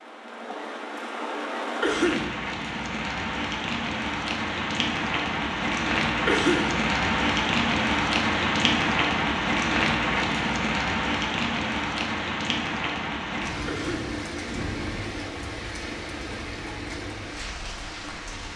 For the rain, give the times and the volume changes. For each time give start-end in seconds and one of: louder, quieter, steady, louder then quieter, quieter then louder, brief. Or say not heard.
0.0-18.5 louder then quieter.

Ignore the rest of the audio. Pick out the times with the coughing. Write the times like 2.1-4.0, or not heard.
1.8-2.4, 6.2-6.8, 13.7-14.2.